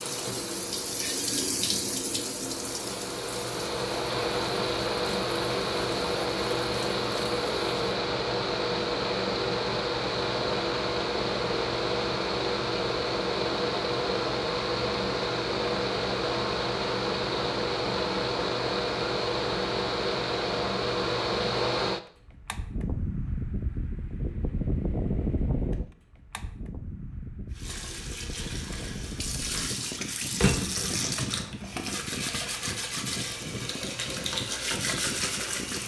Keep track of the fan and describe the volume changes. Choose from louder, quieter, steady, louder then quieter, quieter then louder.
quieter.